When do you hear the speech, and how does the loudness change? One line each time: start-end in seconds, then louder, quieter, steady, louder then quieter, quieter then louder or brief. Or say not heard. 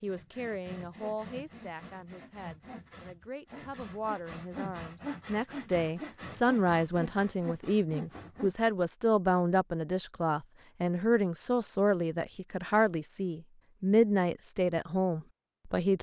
0.0-15.9 louder.